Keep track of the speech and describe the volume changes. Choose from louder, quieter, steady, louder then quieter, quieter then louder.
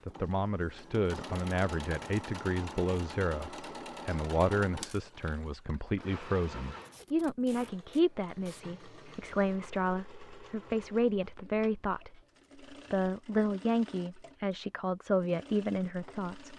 steady.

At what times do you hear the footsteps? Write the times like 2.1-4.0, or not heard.
not heard.